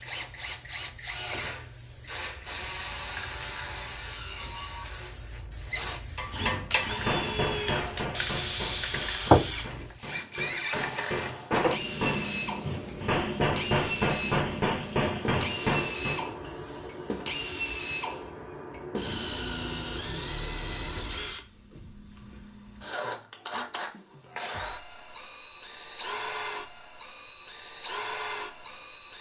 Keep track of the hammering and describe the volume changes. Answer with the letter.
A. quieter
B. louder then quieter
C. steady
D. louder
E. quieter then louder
E.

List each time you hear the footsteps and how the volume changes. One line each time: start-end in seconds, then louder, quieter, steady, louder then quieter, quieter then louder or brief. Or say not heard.
not heard.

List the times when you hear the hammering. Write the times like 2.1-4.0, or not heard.
6.2-16.2.